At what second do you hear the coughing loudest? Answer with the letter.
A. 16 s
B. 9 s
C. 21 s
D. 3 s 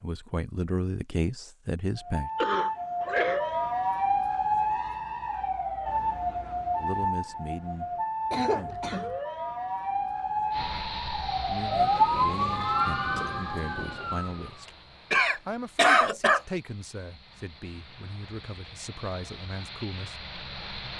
A.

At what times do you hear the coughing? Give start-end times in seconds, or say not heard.
2.4-3.4, 8.3-9.2, 15.1-16.4.